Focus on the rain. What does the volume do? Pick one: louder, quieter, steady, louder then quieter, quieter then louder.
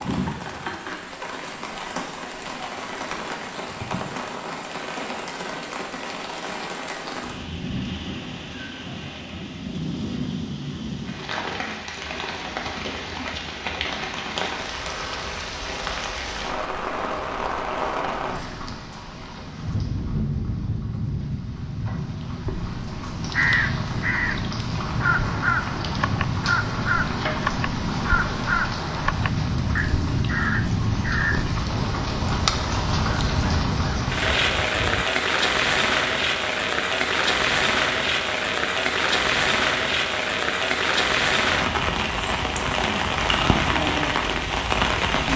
louder.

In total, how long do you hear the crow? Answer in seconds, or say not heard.
12 s.